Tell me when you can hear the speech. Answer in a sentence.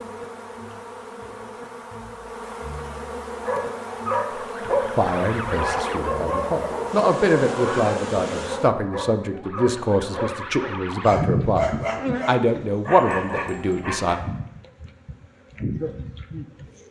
The speech can be heard from 5.0 to 14.2 s.